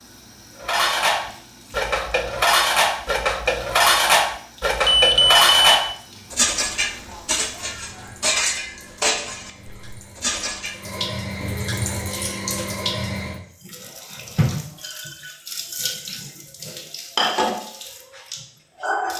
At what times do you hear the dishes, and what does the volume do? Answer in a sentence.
You can hear the dishes from 0.6 to 10.8 s, getting quieter.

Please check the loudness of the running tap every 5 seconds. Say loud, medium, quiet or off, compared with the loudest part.
quiet, quiet, loud, loud.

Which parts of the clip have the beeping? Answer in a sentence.
You can hear the beeping from 4.8 to 5.8 s.